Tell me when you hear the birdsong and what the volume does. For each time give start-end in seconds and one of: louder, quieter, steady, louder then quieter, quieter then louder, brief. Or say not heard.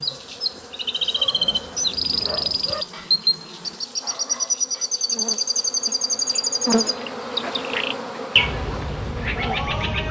0.0-10.0 steady.